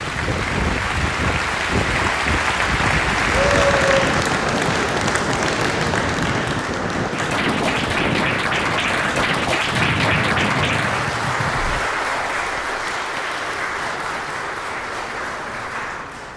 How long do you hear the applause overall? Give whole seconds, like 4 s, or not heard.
16 s.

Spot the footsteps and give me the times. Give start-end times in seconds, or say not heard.
not heard.